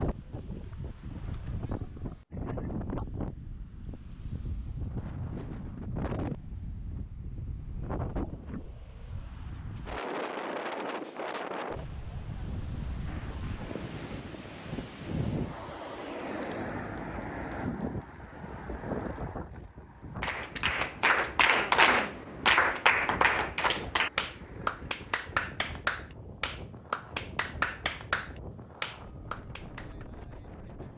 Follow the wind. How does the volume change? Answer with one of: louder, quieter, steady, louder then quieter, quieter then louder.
quieter.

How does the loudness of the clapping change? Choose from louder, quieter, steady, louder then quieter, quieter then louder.
quieter.